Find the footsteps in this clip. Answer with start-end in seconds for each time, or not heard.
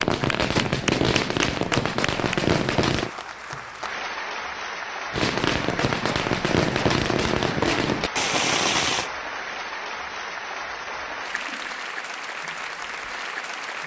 not heard.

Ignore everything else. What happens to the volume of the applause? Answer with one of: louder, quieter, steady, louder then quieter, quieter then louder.
steady.